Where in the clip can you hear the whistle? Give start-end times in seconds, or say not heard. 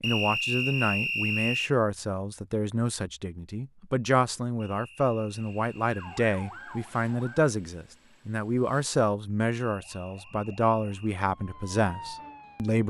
0.0-1.8, 4.5-6.2, 9.7-11.1.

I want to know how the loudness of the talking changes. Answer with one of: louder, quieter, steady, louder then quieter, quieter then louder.
steady.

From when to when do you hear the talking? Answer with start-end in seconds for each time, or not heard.
0.0-12.8.